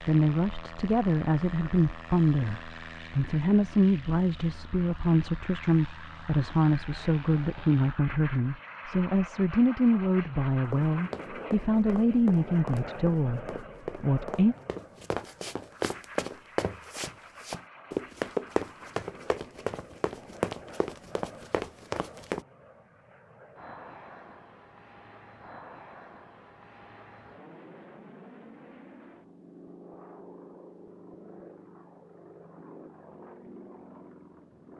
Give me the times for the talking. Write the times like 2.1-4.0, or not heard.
0.0-14.6.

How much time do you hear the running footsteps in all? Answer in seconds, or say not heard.
12 s.